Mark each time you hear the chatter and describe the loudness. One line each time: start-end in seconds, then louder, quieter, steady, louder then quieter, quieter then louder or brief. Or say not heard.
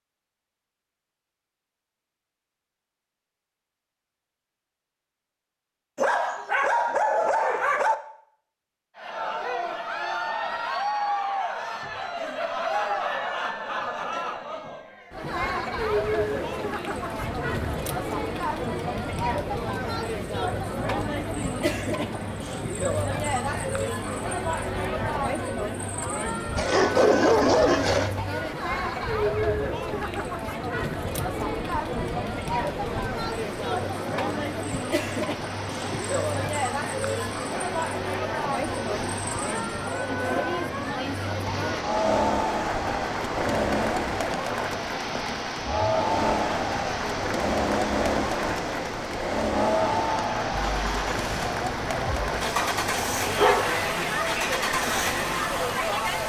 8.9-56.2 steady.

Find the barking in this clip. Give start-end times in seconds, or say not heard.
6.0-8.0, 26.6-28.1, 52.5-53.9.